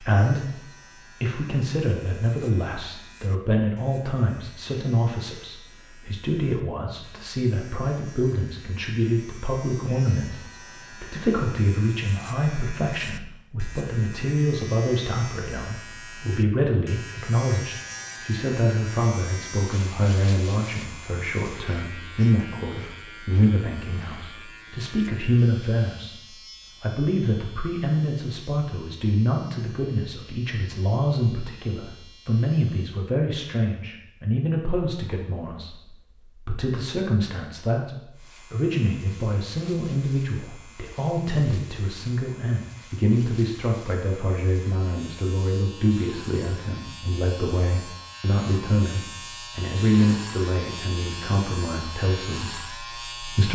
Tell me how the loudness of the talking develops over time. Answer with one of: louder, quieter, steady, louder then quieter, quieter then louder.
steady.